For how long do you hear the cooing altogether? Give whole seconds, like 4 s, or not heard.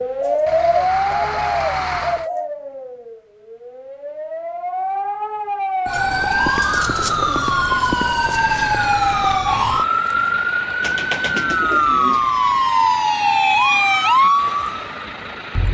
6 s.